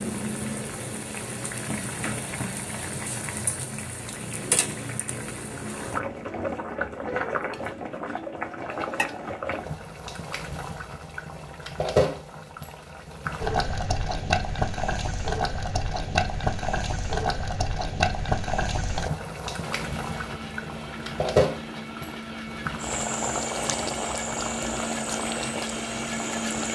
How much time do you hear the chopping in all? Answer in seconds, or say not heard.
not heard.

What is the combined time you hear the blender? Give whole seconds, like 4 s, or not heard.
7 s.